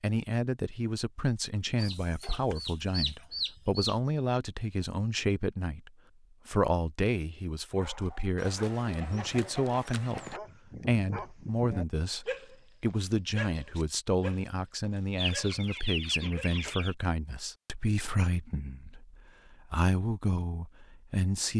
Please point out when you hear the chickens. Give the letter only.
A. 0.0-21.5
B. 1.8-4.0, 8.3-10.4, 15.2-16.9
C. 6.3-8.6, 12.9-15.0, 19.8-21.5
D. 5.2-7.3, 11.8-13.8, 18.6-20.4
B.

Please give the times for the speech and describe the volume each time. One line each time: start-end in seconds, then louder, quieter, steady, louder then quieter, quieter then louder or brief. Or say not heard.
0.0-21.5 steady.